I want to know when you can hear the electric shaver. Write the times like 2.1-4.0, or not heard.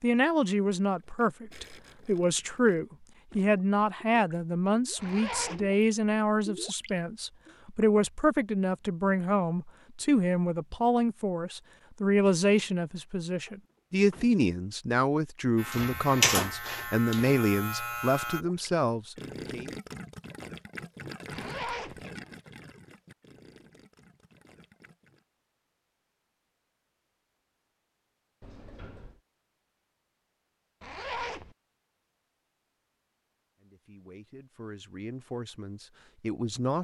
15.6-18.4.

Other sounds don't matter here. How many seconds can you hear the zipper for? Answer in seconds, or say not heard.
2 s.